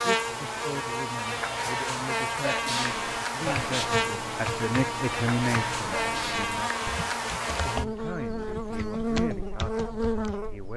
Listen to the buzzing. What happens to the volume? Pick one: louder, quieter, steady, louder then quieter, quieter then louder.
steady.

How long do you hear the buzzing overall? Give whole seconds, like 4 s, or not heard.
11 s.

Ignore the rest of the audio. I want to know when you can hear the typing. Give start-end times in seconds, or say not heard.
2.9-10.5.